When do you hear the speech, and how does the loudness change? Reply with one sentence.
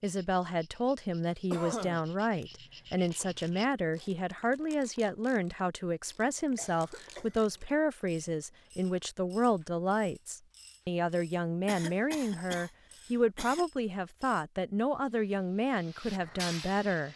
You can hear the speech from 0.0 to 17.1 s, at a steady volume.